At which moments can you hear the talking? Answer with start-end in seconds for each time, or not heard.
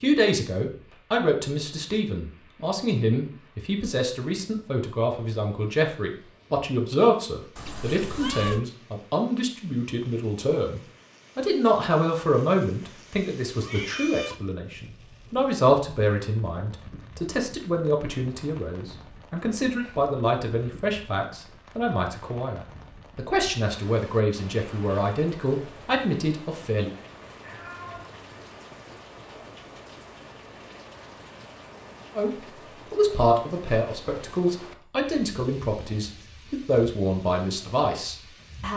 0.0-26.9, 32.1-38.7.